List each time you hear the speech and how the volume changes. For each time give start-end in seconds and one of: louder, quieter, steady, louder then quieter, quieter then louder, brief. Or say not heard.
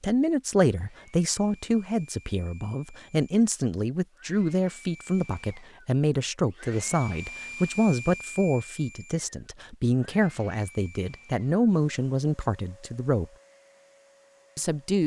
0.0-13.3 steady
14.6-15.0 brief.